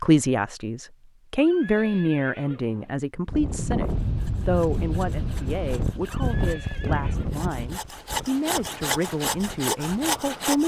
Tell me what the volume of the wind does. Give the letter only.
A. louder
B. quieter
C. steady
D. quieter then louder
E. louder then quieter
B.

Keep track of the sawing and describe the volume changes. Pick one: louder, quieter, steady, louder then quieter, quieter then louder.
louder.